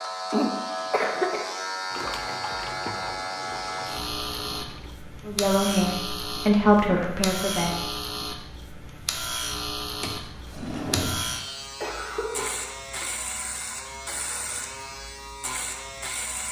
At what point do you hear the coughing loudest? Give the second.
1 s.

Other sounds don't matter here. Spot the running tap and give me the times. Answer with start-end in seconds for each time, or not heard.
1.9-5.0.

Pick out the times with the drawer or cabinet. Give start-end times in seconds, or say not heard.
10.0-11.4.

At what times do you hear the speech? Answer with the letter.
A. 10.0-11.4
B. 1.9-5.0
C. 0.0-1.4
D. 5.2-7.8
D.